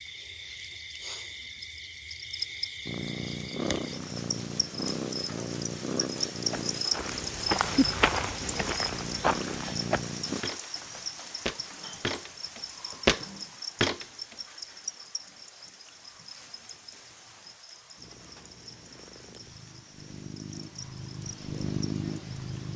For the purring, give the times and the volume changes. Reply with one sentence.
The purring can be heard from 2.9 to 10.4 s, at a steady volume; and from 17.9 to 22.7 s, getting louder.